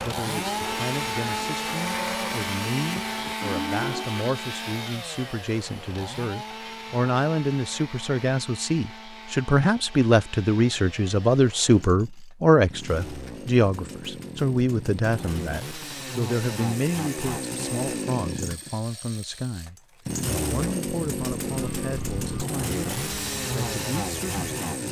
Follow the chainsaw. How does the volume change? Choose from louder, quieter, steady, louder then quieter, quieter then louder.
quieter then louder.